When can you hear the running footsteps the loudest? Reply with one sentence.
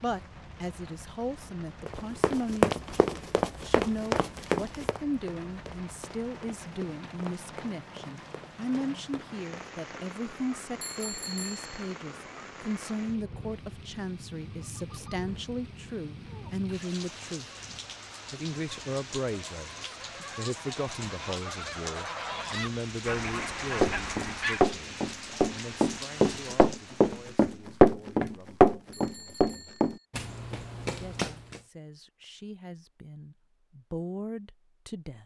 The volume of the running footsteps peaks at 28 seconds.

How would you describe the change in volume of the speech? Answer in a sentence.
The loudness of the speech goes down.